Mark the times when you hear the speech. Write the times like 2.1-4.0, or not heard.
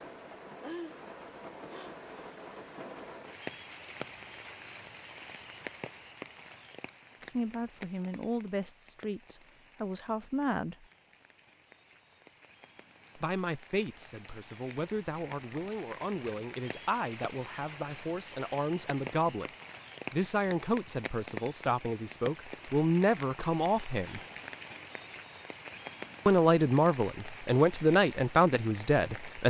7.2-10.8, 13.2-19.5, 20.1-24.2, 26.2-29.4.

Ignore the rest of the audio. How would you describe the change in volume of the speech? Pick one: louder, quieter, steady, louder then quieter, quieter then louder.
louder.